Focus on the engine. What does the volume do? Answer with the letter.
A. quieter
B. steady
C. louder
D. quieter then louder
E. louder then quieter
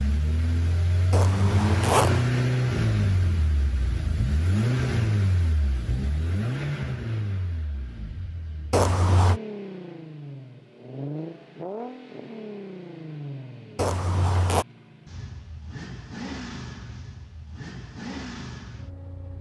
A.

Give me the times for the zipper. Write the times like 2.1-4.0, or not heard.
1.1-2.3, 8.7-9.4, 13.8-14.7.